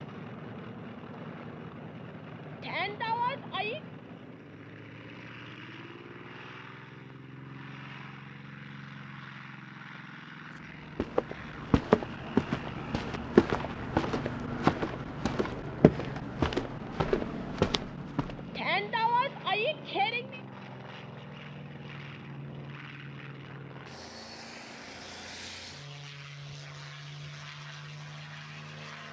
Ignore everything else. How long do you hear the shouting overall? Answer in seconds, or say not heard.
3 s.